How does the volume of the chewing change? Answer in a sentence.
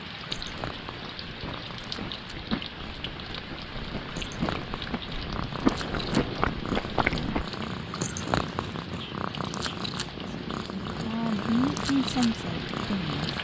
The volume of the chewing goes down, then up.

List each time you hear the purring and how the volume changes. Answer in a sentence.
You can hear the purring from 0.0 to 13.3 s, getting louder.